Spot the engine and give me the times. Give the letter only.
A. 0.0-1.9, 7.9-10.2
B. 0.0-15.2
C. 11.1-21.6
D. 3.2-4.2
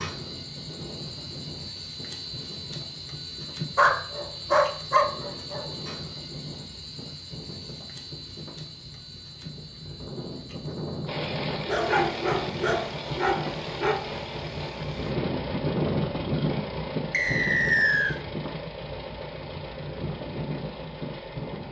C.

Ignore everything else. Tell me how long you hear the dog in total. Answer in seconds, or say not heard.
4 s.